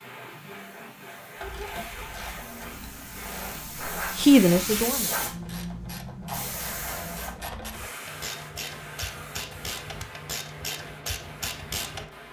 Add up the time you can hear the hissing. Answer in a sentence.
You can hear the hissing for 12 seconds altogether.